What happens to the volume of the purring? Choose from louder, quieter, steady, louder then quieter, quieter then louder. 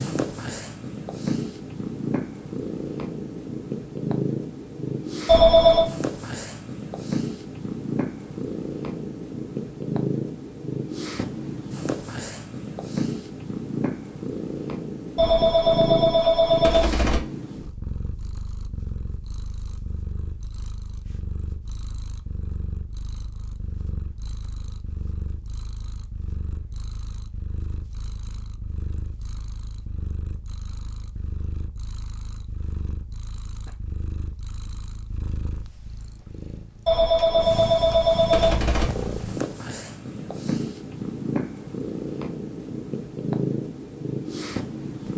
quieter then louder.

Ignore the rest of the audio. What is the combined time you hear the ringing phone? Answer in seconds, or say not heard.
5 s.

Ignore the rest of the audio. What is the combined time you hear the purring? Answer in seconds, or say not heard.
45 s.